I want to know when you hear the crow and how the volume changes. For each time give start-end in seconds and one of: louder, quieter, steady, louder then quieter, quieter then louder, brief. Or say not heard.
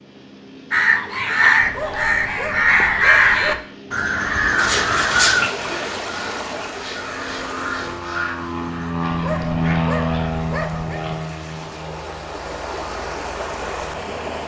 0.7-9.8 quieter.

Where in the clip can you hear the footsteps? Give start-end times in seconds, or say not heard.
not heard.